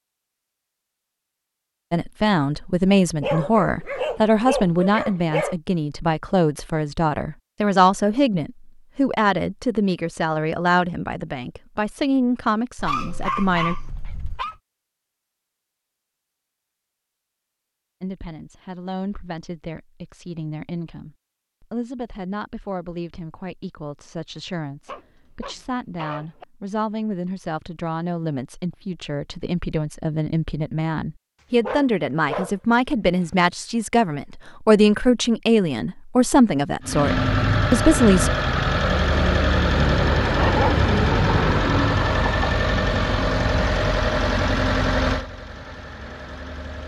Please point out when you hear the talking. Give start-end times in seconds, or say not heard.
1.9-13.8, 18.0-38.3.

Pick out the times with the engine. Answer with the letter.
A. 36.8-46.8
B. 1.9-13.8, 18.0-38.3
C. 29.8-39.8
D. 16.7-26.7
A.